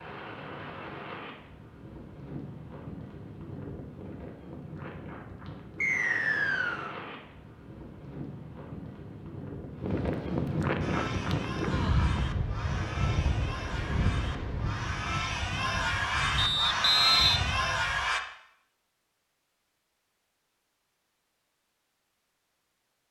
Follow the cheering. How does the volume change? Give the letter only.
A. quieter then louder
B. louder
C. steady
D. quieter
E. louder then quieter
B.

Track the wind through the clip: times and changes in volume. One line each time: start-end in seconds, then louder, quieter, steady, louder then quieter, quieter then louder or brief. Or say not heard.
0.0-18.0 louder then quieter.